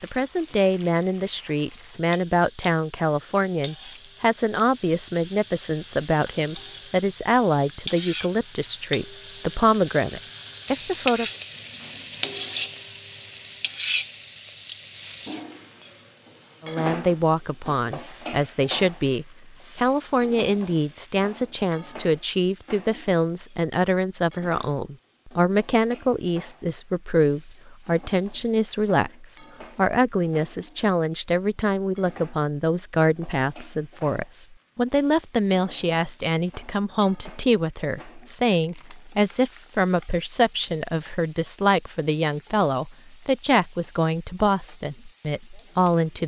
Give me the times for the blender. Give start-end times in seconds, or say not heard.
not heard.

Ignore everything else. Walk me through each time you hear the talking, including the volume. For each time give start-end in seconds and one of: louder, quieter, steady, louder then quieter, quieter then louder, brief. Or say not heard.
0.0-11.2 steady
16.6-46.2 steady.